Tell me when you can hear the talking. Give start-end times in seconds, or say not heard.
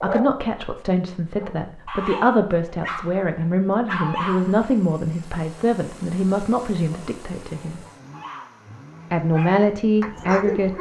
0.0-7.8, 9.1-10.7.